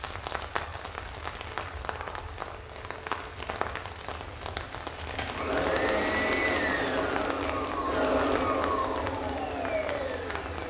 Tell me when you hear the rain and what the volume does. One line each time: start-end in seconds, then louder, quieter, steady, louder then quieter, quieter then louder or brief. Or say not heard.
0.0-10.6 steady.